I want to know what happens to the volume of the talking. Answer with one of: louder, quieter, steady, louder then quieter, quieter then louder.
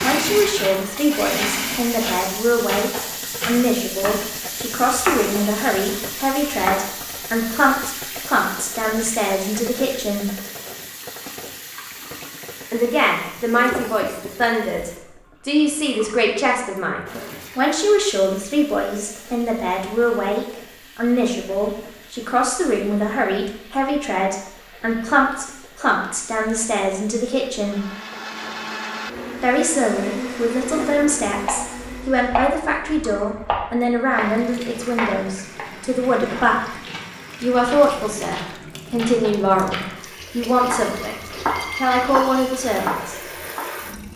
steady.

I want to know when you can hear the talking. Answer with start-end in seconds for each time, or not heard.
0.0-10.3, 12.7-27.8, 29.4-36.6, 37.4-43.3.